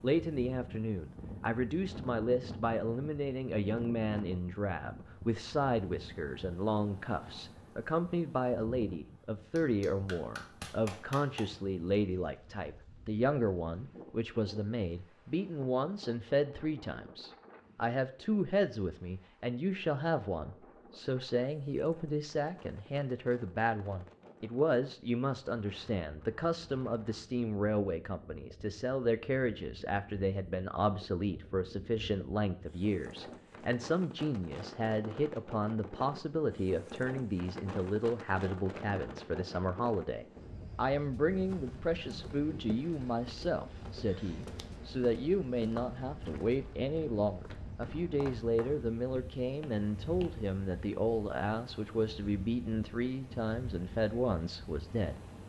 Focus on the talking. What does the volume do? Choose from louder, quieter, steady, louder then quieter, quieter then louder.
steady.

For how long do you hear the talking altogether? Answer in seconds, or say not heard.
55 s.